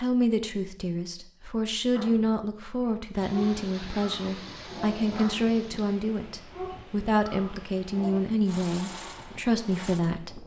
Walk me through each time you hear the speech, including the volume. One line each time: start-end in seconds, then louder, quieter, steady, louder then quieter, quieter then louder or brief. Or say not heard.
0.0-10.4 steady.